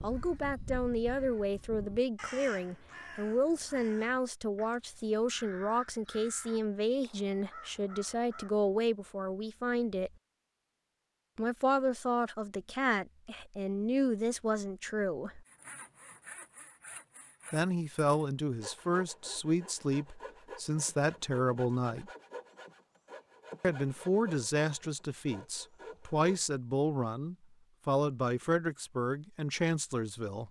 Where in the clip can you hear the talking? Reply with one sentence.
You can hear the talking from 0.0 to 10.1 s, from 11.3 to 15.4 s, from 17.5 to 22.1 s and from 23.6 to 30.4 s.